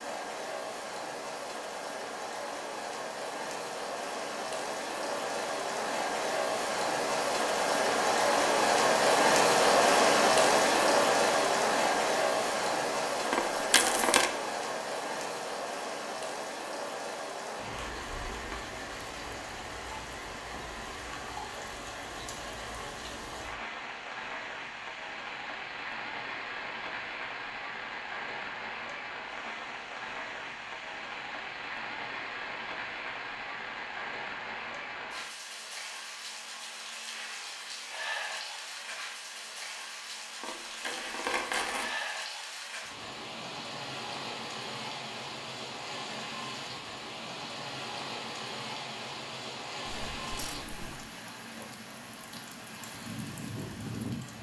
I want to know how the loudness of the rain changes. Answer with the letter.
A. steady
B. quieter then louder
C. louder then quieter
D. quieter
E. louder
D.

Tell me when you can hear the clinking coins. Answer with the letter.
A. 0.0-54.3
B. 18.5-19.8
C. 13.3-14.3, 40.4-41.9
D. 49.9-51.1
C.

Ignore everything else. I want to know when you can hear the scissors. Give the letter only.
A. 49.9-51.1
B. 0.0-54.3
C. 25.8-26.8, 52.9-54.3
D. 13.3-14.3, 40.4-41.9
A.